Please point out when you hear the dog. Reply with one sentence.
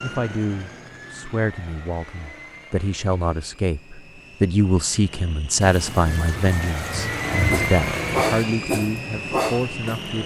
The dog can be heard from 7.4 to 10.1 s.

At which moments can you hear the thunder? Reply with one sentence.
You can hear the thunder from 5.6 to 8.2 s.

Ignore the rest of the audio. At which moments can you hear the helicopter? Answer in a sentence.
You can hear the helicopter from 0.0 to 10.2 s.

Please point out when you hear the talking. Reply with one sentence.
You can hear the talking from 0.0 to 10.2 s.